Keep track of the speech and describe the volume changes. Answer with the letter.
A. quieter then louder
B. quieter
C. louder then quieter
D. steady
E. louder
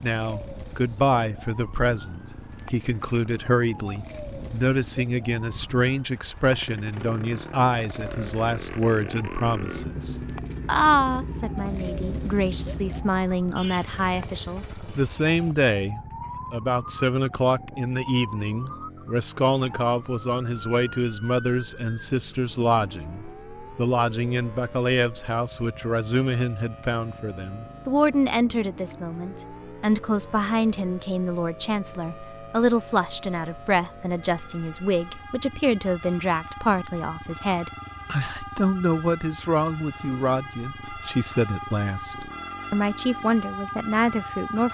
D.